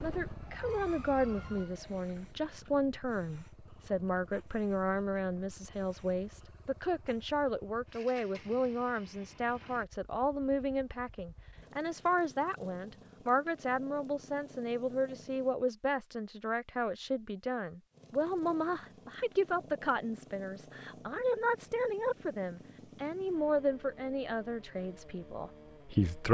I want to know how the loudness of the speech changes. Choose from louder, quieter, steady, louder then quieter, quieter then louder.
steady.